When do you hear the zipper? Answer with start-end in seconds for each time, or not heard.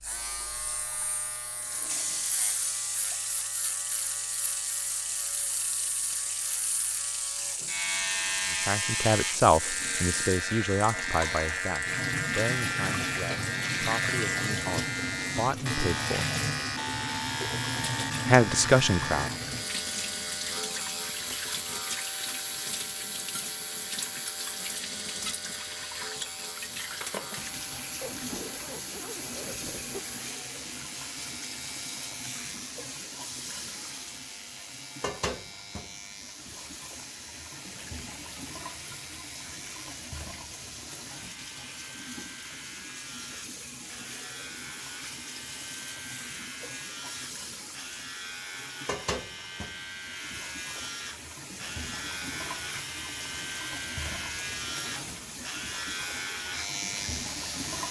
28.0-30.0.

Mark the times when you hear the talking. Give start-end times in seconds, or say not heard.
8.7-16.3, 18.2-19.3.